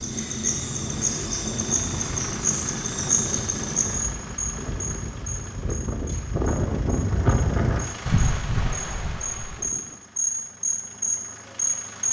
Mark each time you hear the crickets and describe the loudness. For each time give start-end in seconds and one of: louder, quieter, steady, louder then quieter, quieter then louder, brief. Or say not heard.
0.0-12.0 quieter then louder.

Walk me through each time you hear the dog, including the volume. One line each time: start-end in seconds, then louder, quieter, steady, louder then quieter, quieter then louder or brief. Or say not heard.
not heard.